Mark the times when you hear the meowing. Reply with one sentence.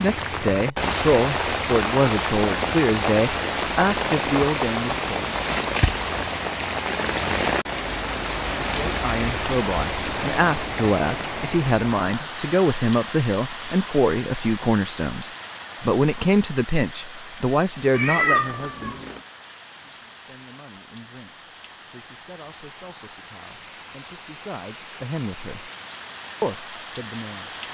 The meowing can be heard from 17.9 to 19.2 s.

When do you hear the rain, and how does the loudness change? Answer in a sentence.
The rain can be heard from 0.0 to 27.6 s, getting quieter.